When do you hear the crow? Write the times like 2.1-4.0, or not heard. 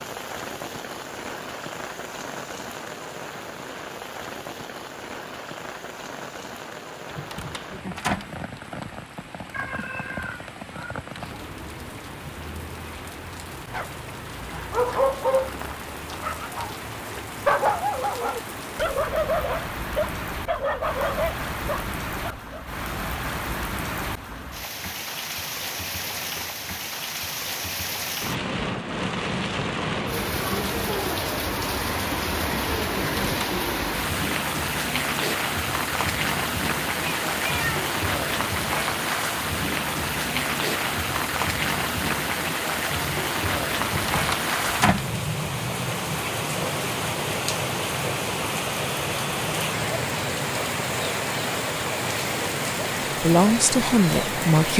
not heard.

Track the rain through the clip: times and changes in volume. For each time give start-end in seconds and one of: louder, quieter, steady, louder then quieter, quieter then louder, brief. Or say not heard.
0.0-54.7 louder.